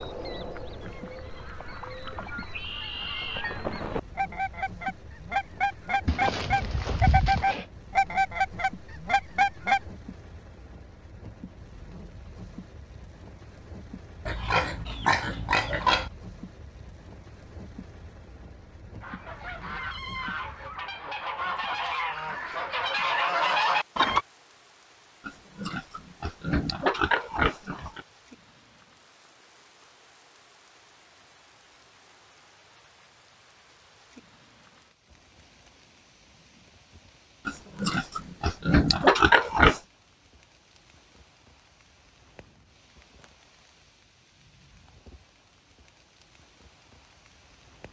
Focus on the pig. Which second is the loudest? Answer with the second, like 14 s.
39 s.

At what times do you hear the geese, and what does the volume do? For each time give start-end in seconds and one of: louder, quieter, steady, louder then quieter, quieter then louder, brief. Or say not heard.
0.0-9.8 louder
19.0-24.2 louder.